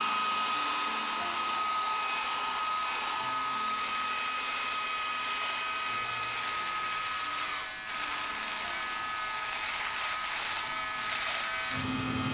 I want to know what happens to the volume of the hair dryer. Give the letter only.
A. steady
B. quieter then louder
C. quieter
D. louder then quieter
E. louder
C.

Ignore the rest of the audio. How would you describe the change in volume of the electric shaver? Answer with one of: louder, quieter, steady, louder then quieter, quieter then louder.
louder.